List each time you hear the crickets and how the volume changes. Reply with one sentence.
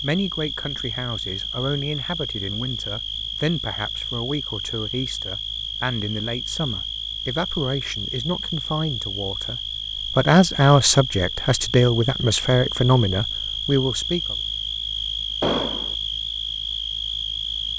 The crickets can be heard from 0.0 to 17.7 s, at a steady volume.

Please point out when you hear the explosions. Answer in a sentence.
You can hear the explosions from 15.4 to 15.9 s.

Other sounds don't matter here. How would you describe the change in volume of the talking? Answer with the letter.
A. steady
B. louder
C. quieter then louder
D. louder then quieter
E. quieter
B.